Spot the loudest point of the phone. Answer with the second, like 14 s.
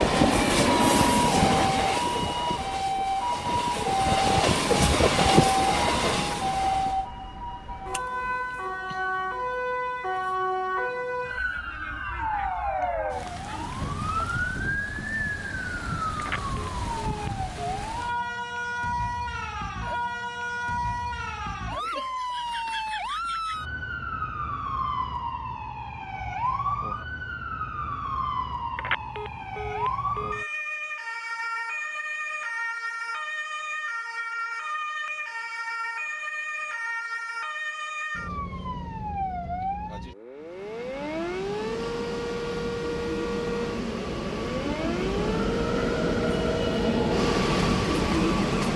29 s.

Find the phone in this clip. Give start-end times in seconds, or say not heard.
16.1-17.6, 28.8-30.4.